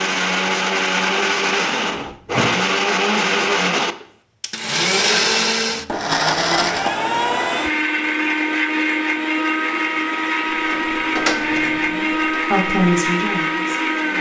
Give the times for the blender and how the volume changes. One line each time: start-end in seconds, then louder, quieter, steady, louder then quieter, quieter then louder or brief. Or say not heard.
0.0-14.1 steady.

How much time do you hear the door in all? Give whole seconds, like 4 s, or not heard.
2 s.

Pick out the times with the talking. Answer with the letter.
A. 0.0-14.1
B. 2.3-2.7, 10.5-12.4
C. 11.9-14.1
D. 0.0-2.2
C.